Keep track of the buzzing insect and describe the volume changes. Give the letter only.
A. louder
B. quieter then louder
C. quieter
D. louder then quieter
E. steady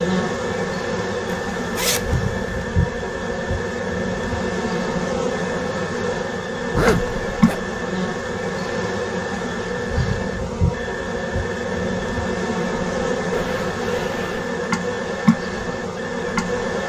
E.